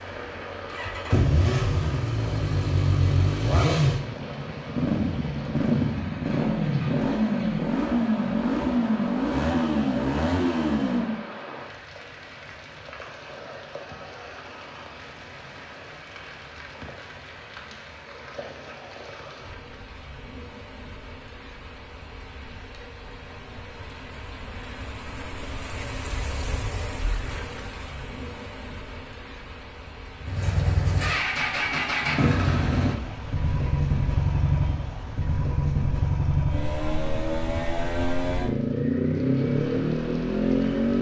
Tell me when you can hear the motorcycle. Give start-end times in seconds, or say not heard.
0.0-11.2, 30.2-40.9.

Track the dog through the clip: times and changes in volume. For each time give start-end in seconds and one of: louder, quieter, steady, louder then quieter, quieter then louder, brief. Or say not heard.
not heard.